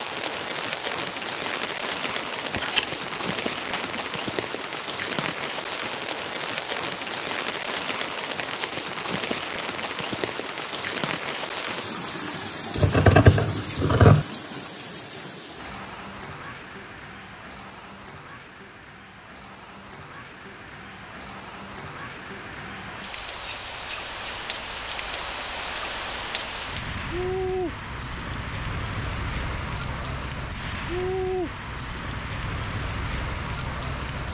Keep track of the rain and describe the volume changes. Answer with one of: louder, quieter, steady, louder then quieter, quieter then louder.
quieter then louder.